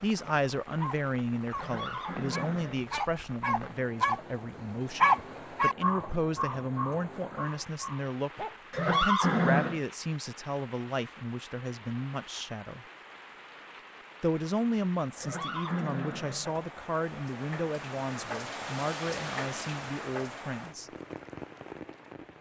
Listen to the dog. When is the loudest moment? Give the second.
5 s.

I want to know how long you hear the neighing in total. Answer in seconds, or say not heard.
4 s.